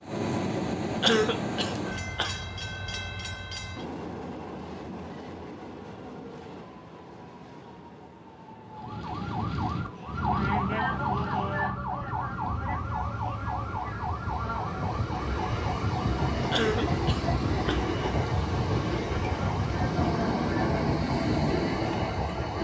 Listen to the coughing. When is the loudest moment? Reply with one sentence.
The loudest moment of the coughing is at 1 second.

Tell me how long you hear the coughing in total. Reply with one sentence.
You can hear the coughing for 3 seconds altogether.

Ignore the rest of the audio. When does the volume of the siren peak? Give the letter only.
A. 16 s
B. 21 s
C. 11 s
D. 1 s
C.